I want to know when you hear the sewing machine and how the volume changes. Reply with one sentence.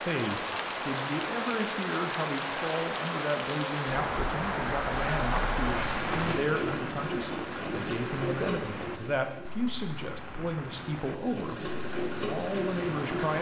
The sewing machine can be heard from 4.8 to 13.3 s, getting quieter then louder.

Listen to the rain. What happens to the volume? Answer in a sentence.
The loudness of the rain goes down.